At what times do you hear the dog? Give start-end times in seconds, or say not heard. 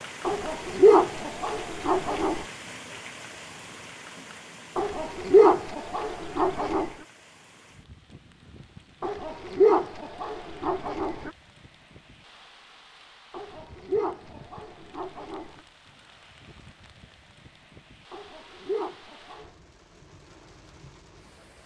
0.2-2.5, 4.8-6.9, 9.0-11.3, 13.3-15.6, 18.1-19.5.